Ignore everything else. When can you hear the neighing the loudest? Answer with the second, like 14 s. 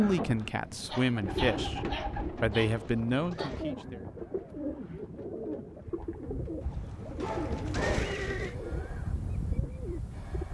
8 s.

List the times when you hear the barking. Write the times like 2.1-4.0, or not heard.
0.6-3.5, 6.6-8.2.